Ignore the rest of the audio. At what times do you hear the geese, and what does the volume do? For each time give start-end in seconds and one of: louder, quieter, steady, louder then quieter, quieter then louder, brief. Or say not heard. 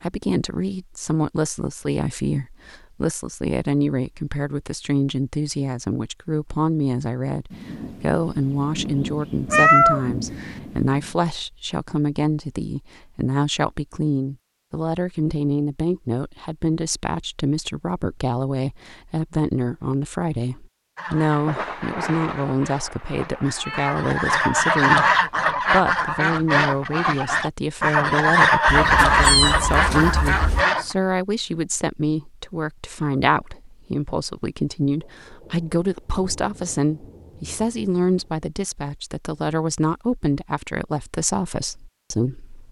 20.9-30.9 louder.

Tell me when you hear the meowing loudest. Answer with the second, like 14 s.
10 s.